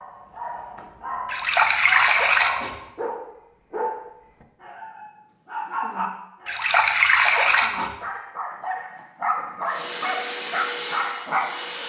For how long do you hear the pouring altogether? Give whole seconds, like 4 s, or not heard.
3 s.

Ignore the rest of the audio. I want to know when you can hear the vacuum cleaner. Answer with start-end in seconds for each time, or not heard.
9.7-11.8.